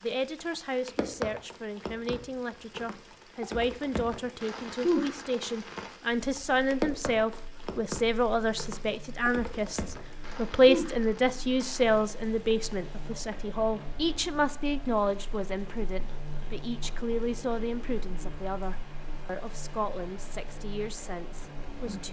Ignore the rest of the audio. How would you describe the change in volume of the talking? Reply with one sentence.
The volume of the talking goes up, then down.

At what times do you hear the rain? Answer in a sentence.
The rain can be heard from 0.0 to 22.0 s.